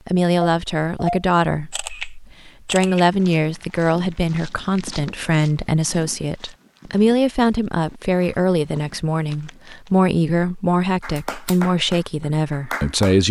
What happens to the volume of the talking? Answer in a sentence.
The volume of the talking stays about the same.